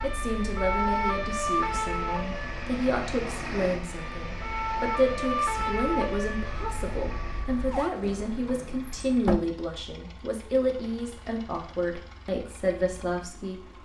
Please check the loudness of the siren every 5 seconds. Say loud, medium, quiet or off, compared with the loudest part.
loud, loud, off.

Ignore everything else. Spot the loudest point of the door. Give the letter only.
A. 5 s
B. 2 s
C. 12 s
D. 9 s
D.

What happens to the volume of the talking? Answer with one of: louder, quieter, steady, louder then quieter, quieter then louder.
steady.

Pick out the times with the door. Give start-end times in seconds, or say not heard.
8.0-9.4.